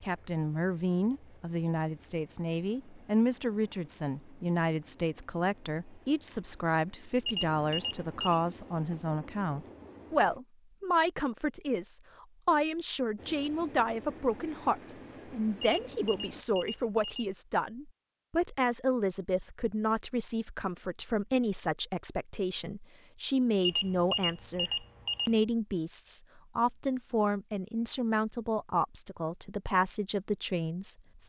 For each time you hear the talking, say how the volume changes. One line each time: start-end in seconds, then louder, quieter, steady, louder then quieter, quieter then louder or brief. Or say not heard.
0.0-30.9 steady.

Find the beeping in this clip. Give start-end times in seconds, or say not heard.
7.2-8.2, 15.6-17.3, 23.6-25.4.